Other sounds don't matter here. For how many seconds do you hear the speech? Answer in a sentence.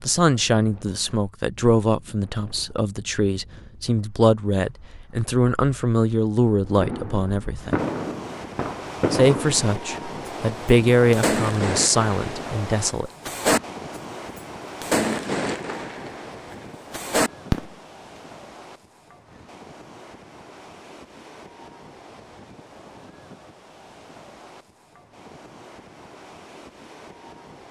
The speech can be heard for 12 seconds in total.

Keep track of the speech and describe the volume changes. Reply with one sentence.
The volume of the speech stays about the same.